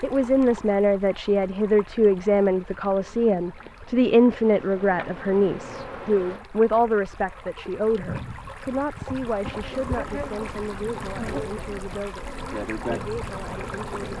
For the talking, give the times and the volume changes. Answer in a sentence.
The talking can be heard from 0.0 to 14.1 s, getting quieter.